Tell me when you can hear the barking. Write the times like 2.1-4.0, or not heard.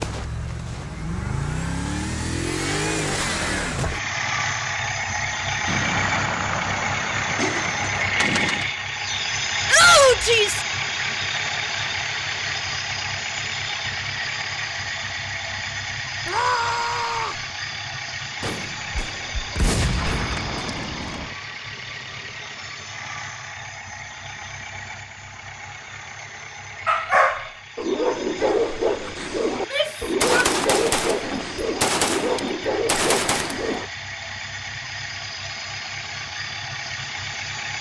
26.9-33.9.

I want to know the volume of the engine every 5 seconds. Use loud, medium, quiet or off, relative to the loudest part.
loud, loud, loud, medium, medium, quiet, medium, medium.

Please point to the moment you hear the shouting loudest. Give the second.
10 s.